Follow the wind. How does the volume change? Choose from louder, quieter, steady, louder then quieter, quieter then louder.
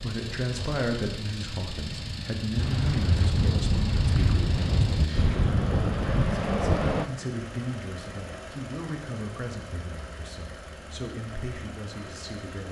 louder.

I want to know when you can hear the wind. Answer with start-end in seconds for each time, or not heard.
0.0-7.0.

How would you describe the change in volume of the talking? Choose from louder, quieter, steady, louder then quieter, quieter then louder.
quieter.